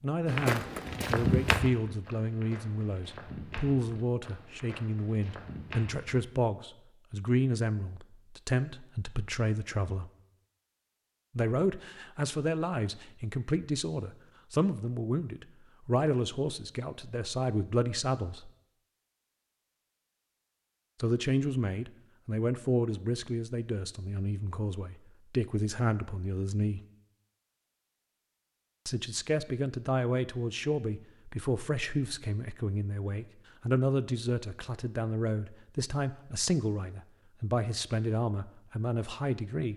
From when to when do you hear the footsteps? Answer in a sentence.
You can hear the footsteps from 0.2 to 6.2 s.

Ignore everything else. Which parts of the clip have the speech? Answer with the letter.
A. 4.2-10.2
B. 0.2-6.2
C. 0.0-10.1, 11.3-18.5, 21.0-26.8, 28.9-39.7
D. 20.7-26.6
C.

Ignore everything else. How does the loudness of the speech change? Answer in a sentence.
The volume of the speech stays about the same.